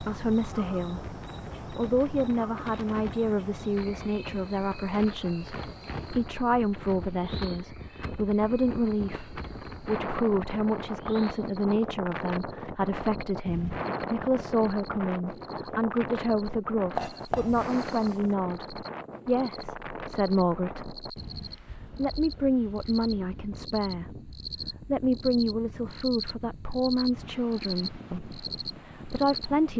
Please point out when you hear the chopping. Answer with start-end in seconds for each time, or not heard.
16.9-18.4.